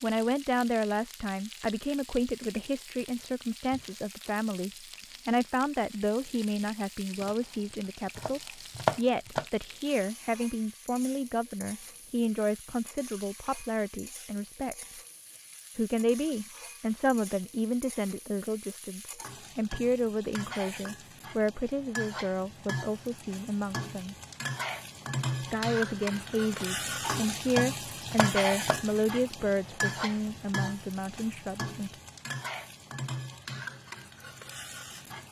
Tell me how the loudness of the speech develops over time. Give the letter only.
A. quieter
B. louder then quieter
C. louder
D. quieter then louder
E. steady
E.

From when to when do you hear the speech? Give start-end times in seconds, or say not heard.
0.0-14.9, 15.8-24.1, 25.4-31.9.